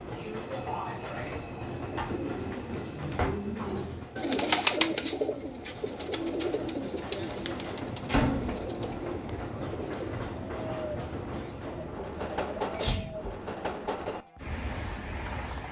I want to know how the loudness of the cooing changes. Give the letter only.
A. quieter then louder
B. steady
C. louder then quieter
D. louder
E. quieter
C.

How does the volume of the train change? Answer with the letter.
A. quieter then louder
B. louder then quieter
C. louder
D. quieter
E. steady
A.